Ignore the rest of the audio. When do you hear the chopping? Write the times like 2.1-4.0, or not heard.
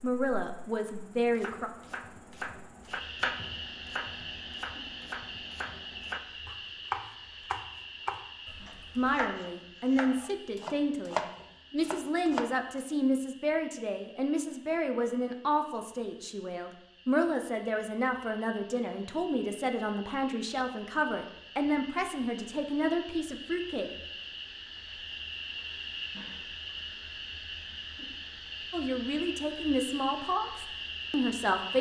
1.2-12.8.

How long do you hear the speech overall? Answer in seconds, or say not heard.
20 s.